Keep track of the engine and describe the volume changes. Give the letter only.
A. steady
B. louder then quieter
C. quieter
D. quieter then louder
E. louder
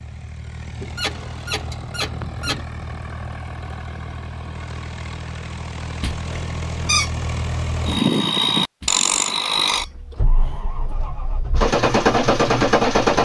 E.